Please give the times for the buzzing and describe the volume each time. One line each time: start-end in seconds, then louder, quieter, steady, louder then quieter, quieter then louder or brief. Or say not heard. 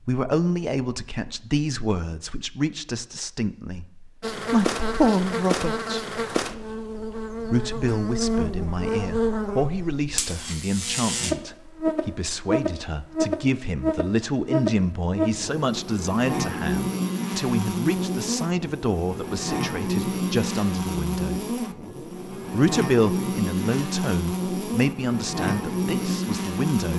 4.2-26.9 steady.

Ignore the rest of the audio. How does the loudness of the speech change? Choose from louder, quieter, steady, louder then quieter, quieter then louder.
steady.